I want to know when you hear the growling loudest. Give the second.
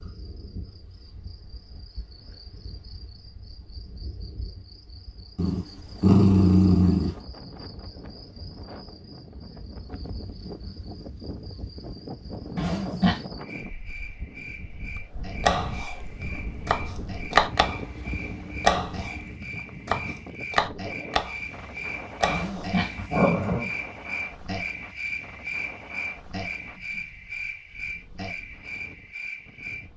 6 s.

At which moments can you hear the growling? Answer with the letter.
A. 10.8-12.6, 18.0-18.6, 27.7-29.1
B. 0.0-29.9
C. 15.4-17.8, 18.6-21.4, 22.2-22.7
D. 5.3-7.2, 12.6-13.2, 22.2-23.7
D.